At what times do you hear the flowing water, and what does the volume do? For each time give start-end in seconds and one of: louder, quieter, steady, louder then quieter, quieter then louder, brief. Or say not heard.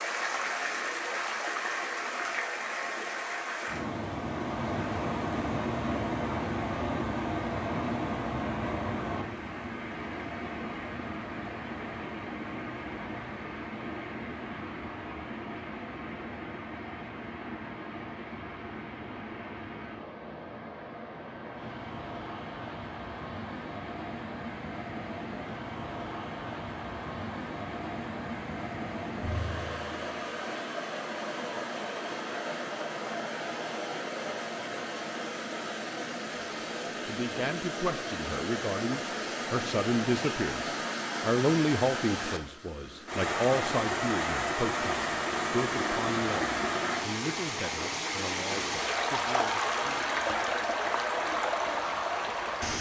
0.0-52.7 quieter then louder.